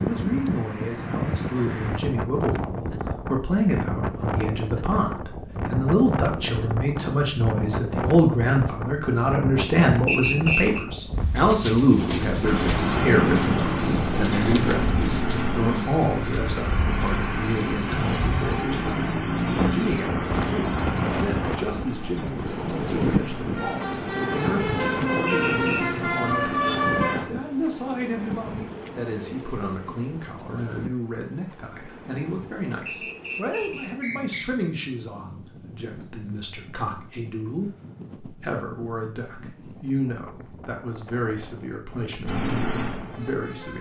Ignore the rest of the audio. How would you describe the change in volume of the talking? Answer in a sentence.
The loudness of the talking goes down.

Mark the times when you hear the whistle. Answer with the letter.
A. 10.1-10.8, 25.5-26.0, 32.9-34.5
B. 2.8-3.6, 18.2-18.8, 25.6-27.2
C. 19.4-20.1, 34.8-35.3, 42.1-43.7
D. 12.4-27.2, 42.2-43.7
A.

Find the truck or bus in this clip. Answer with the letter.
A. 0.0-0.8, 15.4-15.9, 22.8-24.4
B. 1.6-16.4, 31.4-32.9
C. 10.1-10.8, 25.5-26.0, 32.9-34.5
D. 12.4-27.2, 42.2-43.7
D.